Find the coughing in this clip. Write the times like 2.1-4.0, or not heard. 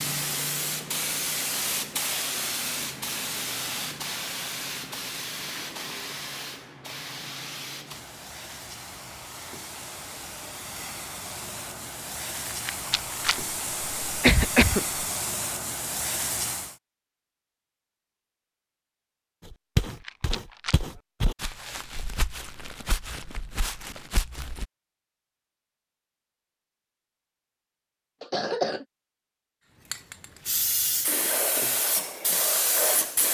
14.1-15.1, 28.2-28.9.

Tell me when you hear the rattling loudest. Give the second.
13 s.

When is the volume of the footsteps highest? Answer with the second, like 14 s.
20 s.